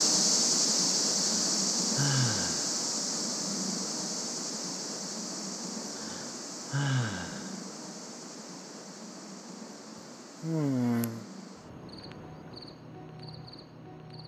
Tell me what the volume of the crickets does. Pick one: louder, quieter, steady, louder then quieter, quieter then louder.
quieter.